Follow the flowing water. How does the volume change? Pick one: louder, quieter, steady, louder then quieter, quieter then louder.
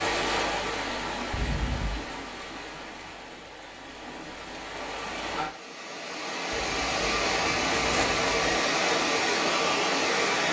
quieter then louder.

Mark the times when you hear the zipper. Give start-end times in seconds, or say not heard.
1.3-2.0, 6.5-8.4.